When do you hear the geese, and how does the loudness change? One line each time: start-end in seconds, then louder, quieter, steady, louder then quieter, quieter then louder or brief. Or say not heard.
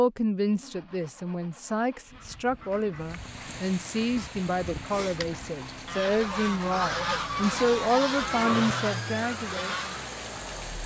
2.1-10.1 louder.